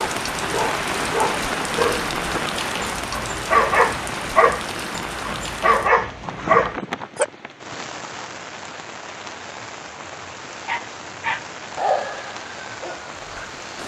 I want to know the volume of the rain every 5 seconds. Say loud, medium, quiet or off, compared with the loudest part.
loud, medium, medium.